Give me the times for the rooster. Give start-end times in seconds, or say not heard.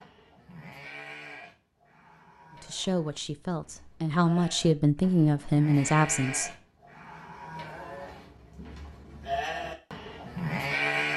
not heard.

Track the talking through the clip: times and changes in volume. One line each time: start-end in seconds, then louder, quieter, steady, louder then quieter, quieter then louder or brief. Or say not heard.
2.5-6.5 louder.